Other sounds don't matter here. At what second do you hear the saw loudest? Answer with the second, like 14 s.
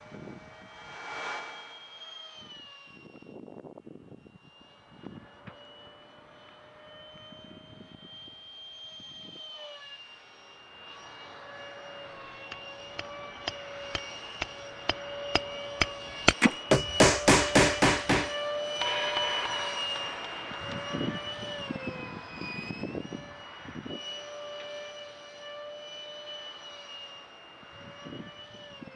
1 s.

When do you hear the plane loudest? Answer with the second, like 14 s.
19 s.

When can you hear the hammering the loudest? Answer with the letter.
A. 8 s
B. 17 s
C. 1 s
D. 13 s
B.